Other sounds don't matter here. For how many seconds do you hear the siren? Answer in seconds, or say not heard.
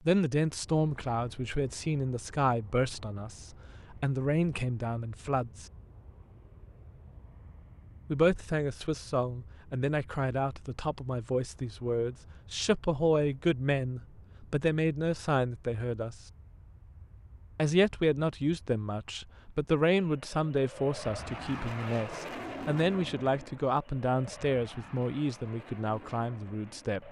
not heard.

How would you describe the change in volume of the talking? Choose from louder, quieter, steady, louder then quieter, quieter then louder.
steady.